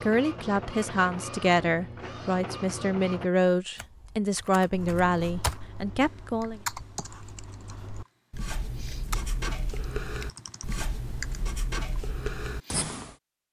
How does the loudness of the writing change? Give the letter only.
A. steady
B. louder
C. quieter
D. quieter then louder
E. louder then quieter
B.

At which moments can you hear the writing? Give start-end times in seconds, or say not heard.
4.7-13.2.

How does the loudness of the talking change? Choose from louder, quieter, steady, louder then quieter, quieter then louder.
steady.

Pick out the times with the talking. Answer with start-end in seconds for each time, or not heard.
0.0-6.6.